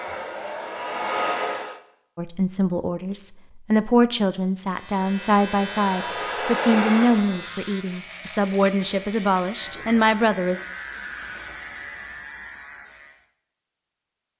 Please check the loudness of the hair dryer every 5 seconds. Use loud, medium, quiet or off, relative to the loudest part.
loud, loud, off.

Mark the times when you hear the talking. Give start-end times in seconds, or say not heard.
2.1-10.6.